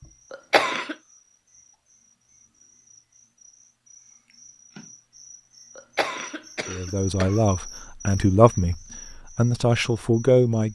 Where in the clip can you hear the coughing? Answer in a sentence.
You can hear the coughing from 0.3 to 0.9 s and from 5.8 to 7.4 s.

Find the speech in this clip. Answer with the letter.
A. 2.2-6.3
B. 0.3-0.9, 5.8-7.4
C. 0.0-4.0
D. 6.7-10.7
D.